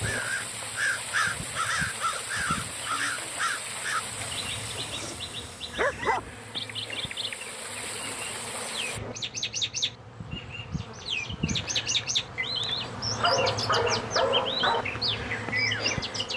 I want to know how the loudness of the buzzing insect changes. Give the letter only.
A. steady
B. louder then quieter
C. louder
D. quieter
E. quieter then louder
C.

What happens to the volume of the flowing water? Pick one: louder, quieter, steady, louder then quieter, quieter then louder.
quieter then louder.